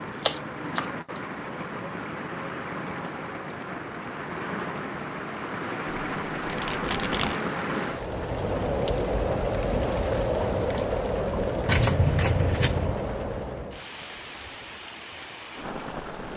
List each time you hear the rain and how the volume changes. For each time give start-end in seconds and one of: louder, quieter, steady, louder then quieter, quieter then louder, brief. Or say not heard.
0.0-16.3 louder then quieter.